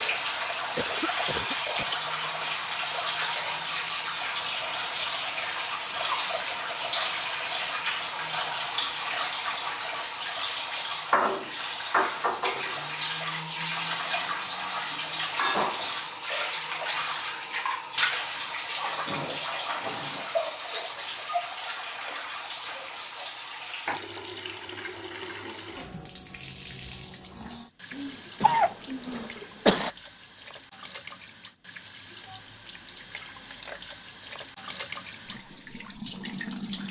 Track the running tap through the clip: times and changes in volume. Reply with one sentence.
You can hear the running tap from 0.0 to 36.8 s, getting quieter.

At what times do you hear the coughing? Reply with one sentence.
You can hear the coughing from 0.8 to 2.0 s and from 27.9 to 29.9 s.